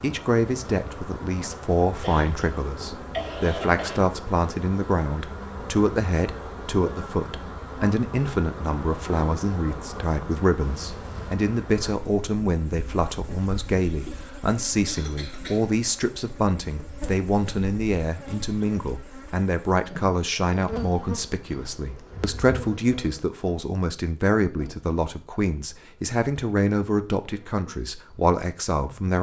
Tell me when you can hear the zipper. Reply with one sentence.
You can hear the zipper from 10.7 to 11.3 s.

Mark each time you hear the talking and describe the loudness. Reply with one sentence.
You can hear the talking from 0.0 to 29.1 s, at a steady volume.